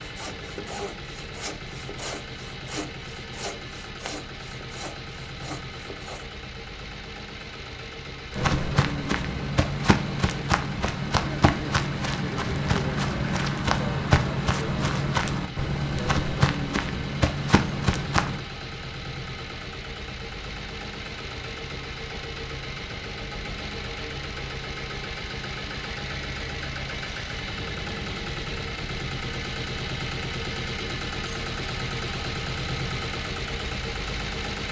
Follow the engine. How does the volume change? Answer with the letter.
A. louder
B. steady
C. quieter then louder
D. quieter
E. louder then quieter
A.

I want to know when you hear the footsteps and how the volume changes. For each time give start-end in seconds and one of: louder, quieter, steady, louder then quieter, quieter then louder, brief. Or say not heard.
8.3-18.4 steady.